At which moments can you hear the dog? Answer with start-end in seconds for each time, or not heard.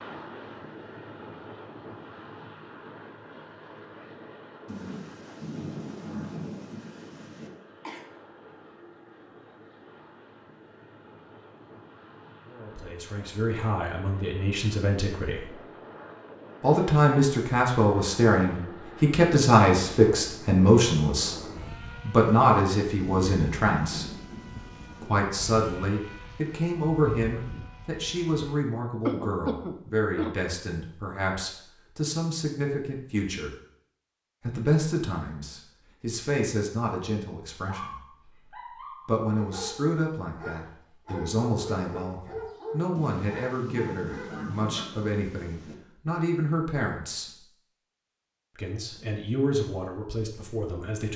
37.6-44.9.